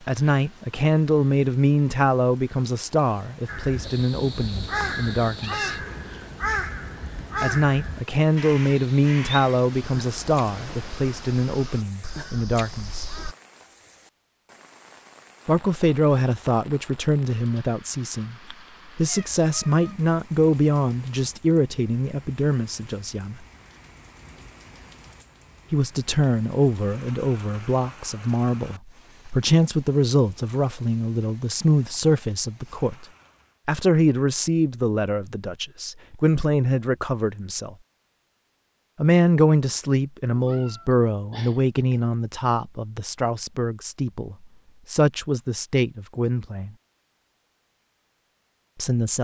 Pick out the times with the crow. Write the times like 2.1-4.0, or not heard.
3.5-13.3.